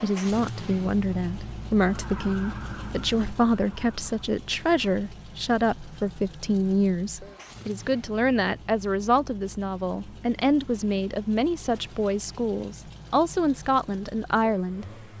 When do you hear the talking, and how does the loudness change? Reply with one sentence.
The talking can be heard from 0.0 to 15.1 s, at a steady volume.